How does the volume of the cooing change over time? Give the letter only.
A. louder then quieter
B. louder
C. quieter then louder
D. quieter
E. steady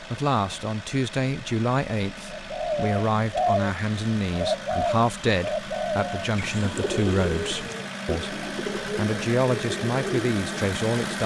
D.